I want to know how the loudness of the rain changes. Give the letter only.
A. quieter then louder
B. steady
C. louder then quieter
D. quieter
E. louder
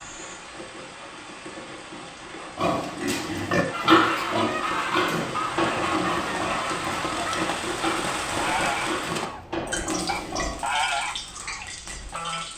C.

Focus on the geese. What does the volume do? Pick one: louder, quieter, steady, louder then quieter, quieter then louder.
quieter.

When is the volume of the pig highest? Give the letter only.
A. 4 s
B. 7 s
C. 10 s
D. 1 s
A.